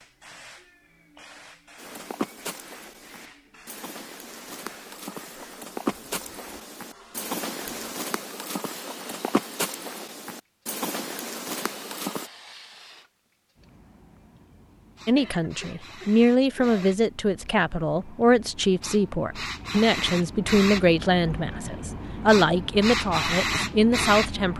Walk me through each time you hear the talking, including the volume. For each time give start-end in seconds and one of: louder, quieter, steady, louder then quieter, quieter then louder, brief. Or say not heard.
15.1-24.5 steady.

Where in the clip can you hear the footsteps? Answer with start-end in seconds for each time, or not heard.
1.8-12.3.